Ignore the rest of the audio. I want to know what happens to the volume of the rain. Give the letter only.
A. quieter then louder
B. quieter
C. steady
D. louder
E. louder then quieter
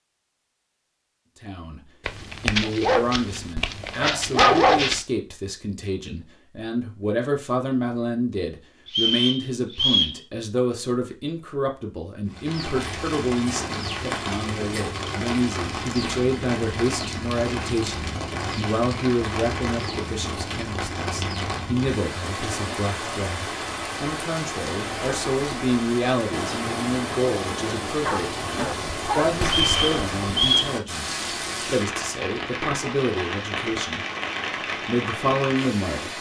C.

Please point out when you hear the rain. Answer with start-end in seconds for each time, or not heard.
12.2-36.1.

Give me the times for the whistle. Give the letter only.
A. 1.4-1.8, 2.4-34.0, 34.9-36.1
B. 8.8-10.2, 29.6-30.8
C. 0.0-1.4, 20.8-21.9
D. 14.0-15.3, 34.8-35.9
B.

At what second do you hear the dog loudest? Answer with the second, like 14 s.
5 s.